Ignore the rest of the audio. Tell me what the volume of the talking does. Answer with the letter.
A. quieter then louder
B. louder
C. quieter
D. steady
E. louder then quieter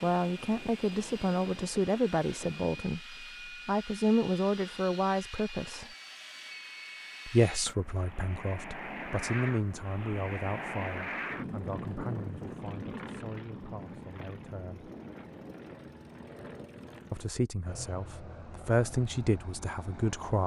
A.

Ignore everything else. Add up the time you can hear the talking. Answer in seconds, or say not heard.
17 s.